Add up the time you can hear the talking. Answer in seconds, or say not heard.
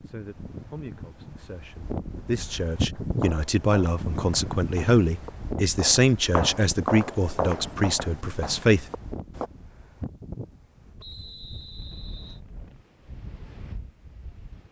9 s.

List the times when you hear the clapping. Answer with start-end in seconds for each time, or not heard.
not heard.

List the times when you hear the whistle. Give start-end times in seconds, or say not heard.
11.0-12.4.